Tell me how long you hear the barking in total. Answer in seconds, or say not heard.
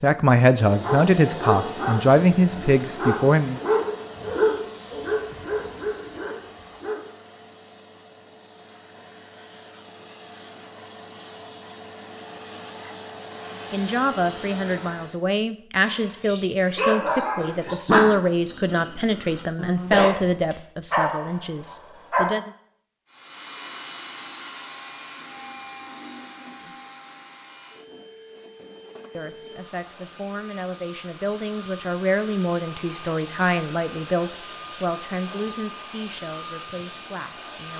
13 s.